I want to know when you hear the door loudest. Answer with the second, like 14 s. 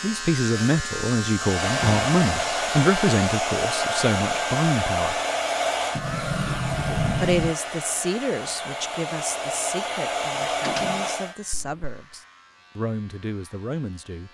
7 s.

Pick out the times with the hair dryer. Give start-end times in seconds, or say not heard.
1.4-11.3.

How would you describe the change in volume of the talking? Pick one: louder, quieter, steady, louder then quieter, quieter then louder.
quieter.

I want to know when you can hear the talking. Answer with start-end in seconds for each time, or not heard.
0.0-5.2, 7.2-14.2.